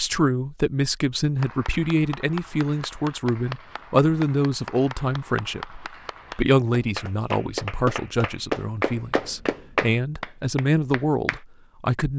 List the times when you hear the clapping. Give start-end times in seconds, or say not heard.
1.4-11.4.